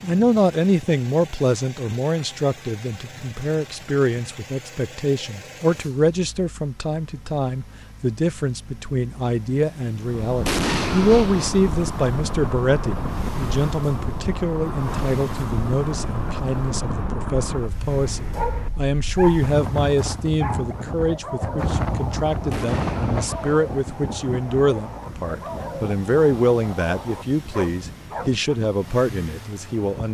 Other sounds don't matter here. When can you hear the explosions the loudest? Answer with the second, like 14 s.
11 s.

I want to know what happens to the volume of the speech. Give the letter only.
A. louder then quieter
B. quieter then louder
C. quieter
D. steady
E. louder
D.